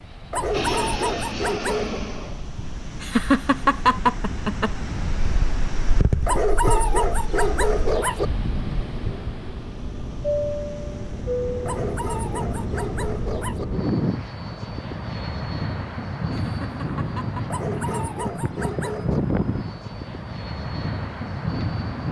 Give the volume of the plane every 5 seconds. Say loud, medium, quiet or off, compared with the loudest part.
loud, medium, loud, loud, loud.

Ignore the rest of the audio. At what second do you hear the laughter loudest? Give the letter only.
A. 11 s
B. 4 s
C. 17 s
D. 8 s
B.